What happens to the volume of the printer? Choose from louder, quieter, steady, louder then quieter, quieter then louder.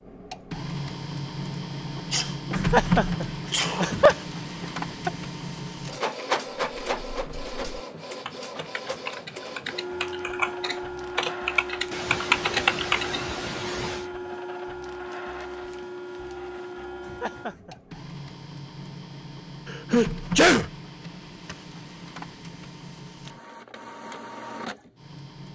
quieter.